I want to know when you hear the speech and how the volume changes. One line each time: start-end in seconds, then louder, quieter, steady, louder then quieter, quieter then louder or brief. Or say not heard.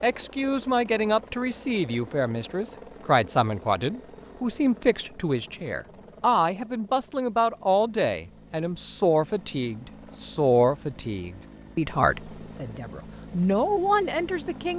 0.0-14.7 steady.